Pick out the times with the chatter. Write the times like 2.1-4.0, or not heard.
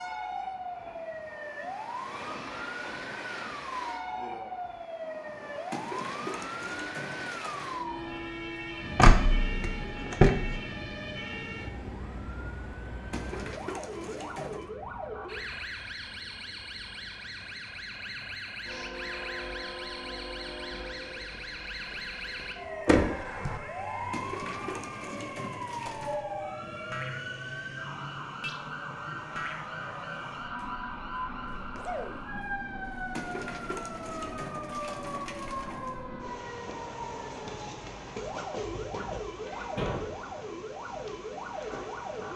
not heard.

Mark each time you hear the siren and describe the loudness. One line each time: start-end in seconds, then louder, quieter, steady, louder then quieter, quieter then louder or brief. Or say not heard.
0.0-42.3 steady.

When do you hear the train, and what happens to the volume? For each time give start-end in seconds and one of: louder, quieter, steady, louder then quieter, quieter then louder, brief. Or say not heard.
0.0-42.3 steady.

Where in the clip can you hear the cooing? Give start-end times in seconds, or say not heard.
5.7-7.8, 13.1-14.7, 24.1-26.2, 33.1-36.0.